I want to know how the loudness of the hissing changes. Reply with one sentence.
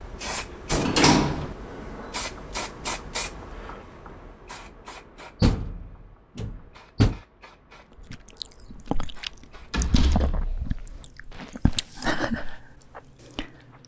The loudness of the hissing goes down.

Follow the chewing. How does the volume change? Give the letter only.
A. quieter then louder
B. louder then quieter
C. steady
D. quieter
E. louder
A.